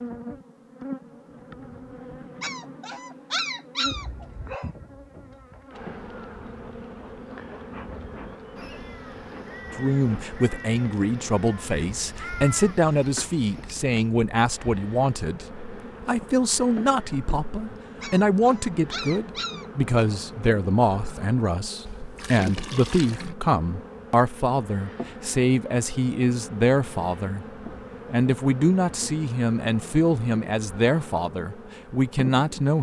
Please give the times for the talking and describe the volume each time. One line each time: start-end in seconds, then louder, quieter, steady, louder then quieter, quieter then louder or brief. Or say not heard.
9.8-27.4 steady
28.1-32.7 steady.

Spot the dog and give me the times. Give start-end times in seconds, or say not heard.
2.4-4.7, 18.0-20.2.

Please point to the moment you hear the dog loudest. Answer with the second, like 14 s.
3 s.